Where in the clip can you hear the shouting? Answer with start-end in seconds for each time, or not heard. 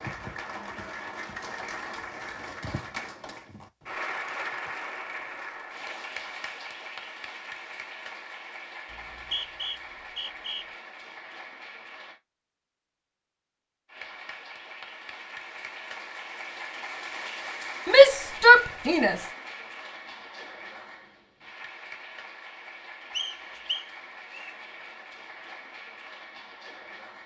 17.9-19.2.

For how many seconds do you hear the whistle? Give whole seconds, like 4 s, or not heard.
3 s.